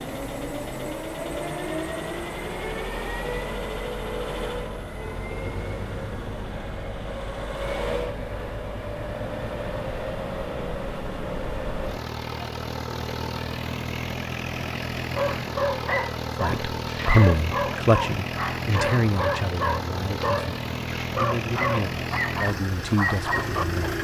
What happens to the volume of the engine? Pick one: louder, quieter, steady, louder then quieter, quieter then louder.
steady.